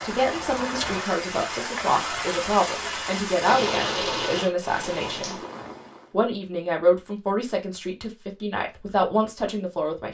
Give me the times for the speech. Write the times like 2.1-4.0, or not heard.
0.0-5.3, 6.1-10.1.